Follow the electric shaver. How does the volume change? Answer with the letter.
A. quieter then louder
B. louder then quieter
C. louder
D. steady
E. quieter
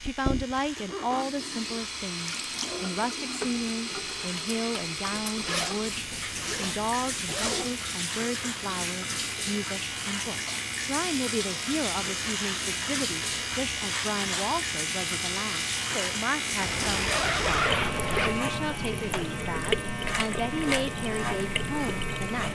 C.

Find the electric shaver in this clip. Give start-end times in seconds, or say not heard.
0.0-22.4.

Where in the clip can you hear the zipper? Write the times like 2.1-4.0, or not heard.
5.2-7.8, 16.6-18.4.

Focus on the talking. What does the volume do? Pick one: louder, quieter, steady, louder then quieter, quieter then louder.
steady.